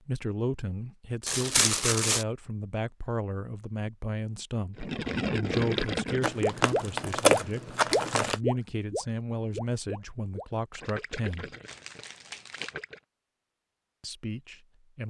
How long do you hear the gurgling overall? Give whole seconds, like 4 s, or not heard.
8 s.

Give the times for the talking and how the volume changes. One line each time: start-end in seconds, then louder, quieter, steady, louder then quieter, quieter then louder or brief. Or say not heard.
0.1-11.5 steady
14.0-15.0 brief.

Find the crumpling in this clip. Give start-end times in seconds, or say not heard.
1.2-2.2, 6.2-8.4, 11.7-12.8.